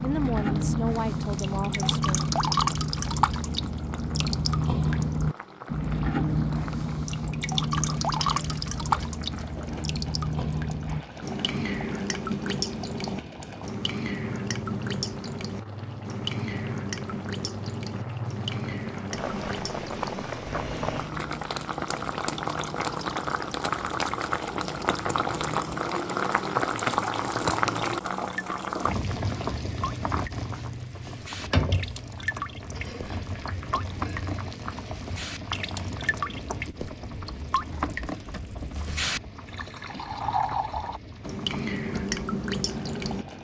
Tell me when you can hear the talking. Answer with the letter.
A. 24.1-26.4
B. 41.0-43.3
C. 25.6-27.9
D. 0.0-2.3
D.